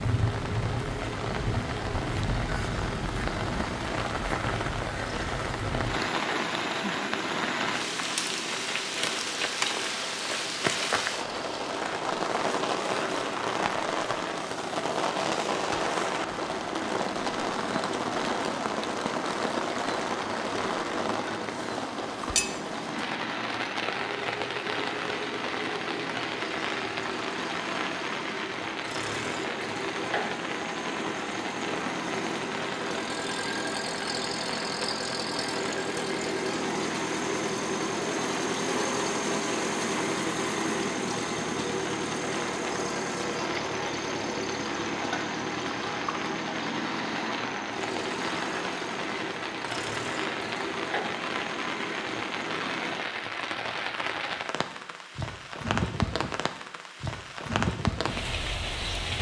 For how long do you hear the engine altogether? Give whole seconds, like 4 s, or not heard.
53 s.